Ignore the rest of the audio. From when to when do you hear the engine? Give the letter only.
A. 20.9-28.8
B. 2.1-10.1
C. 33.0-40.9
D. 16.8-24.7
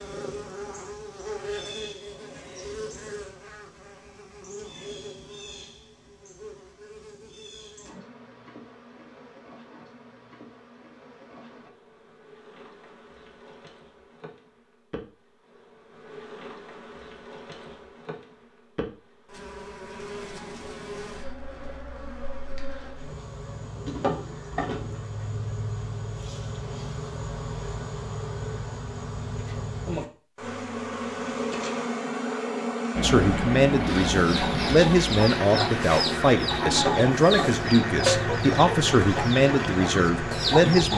C.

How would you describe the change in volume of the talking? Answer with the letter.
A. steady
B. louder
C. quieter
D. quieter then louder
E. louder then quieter
A.